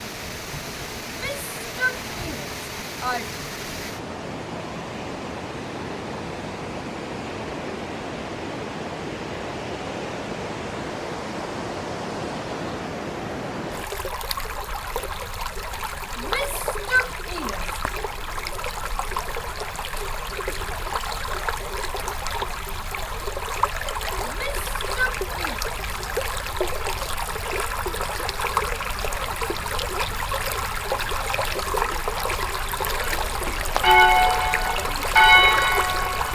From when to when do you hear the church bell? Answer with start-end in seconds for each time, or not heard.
33.0-36.3.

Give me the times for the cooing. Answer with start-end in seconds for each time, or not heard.
not heard.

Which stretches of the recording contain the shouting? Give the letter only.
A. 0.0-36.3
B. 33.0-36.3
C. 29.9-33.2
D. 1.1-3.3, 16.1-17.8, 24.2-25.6
D.